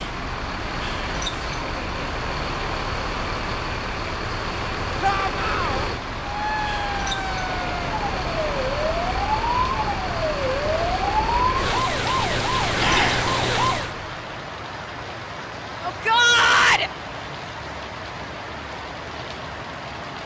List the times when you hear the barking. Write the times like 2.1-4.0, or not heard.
not heard.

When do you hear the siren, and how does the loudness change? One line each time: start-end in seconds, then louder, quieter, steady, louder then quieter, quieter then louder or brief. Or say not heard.
6.2-13.9 louder.